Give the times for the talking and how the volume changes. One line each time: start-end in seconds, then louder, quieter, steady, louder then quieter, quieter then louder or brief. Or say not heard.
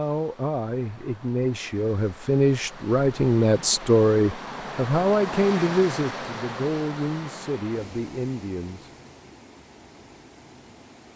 0.0-8.9 louder then quieter.